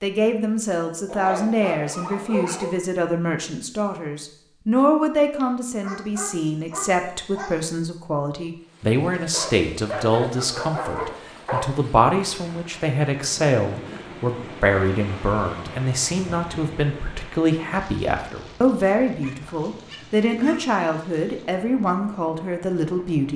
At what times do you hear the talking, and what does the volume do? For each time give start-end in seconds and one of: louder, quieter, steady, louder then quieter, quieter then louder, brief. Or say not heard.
0.0-23.3 steady.